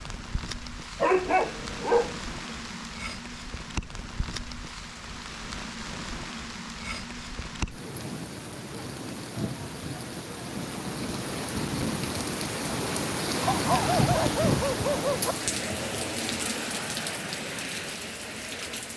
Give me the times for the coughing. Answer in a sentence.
You can't hear the coughing here.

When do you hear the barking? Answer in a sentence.
You can hear the barking from 0.9 to 2.1 s and from 13.4 to 15.3 s.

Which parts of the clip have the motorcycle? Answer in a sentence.
You can't hear the motorcycle here.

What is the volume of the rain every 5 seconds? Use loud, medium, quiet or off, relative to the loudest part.
medium, medium, loud, loud.